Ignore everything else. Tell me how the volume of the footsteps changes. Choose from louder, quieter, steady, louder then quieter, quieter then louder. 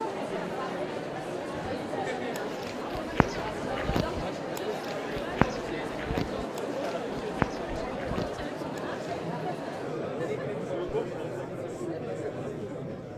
louder then quieter.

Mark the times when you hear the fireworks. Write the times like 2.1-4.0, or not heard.
not heard.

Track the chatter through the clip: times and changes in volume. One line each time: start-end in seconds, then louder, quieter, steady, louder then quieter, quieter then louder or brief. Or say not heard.
0.0-13.1 steady.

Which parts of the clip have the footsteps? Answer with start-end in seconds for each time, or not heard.
2.4-9.2.